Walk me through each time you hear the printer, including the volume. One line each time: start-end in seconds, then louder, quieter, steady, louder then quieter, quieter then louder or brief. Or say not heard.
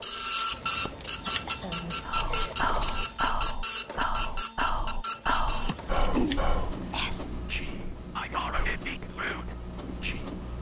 0.0-10.5 quieter.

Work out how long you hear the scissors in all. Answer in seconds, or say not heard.
4 s.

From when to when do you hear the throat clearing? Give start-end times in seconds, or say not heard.
1.2-2.5, 5.7-6.4.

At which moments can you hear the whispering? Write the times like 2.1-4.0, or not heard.
2.0-10.3.